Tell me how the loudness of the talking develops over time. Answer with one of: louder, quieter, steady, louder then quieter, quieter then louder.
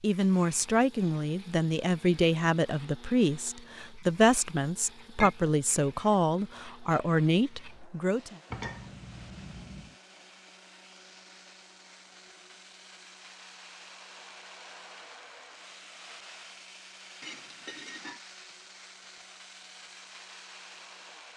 steady.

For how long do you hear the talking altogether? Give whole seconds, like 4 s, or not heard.
8 s.